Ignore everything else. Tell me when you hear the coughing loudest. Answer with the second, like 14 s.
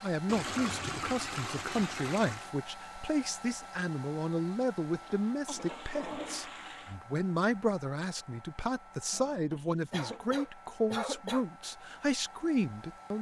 11 s.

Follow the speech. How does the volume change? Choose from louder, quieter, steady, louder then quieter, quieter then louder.
steady.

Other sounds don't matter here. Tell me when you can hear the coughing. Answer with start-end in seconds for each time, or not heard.
0.5-0.9, 4.9-5.6, 9.9-11.4.